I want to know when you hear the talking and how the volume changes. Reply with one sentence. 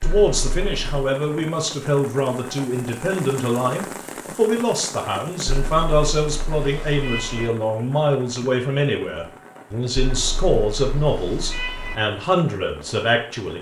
You can hear the talking from 0.0 to 13.5 s, at a steady volume.